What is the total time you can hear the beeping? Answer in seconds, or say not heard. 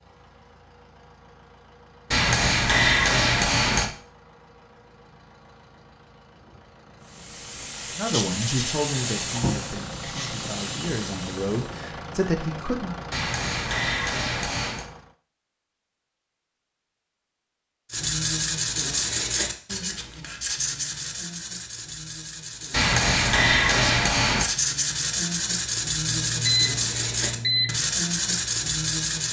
2 s.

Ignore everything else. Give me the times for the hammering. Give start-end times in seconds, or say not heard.
2.1-3.9, 13.1-14.8, 22.7-24.5.